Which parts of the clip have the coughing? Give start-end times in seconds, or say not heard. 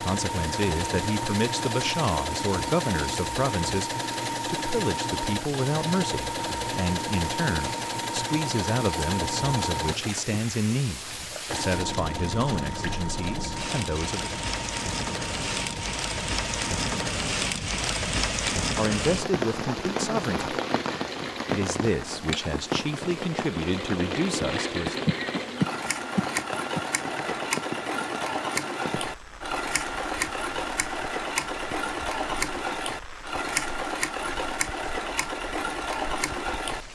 25.1-26.8.